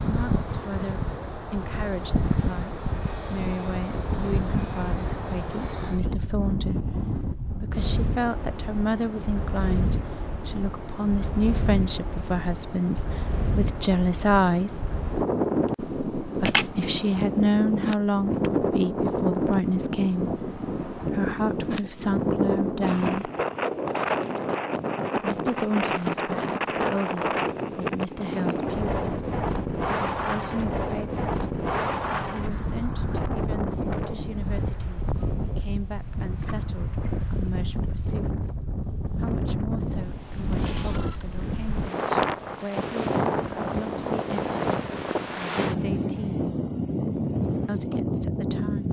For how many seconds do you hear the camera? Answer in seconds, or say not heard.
2 s.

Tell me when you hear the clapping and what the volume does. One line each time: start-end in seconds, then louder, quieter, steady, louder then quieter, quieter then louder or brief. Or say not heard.
not heard.